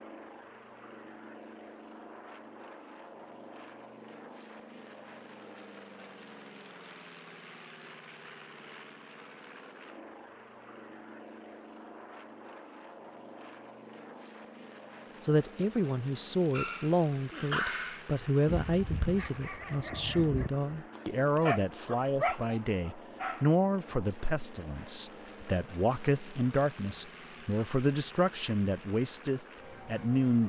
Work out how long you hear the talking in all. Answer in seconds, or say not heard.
15 s.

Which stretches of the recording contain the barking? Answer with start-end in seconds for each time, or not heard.
16.5-23.4.